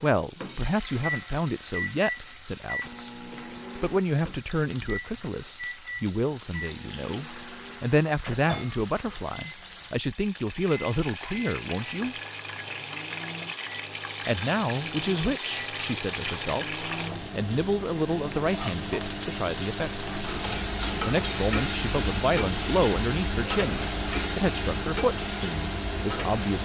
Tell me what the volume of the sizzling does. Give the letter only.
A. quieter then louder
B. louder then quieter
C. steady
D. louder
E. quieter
D.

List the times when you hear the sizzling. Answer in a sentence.
You can hear the sizzling from 0.0 to 26.6 s.